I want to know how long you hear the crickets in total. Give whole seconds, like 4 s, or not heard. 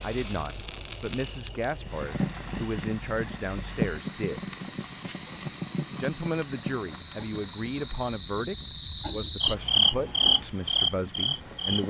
12 s.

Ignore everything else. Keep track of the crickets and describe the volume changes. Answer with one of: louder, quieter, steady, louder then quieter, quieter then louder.
louder.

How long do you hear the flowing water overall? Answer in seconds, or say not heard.
not heard.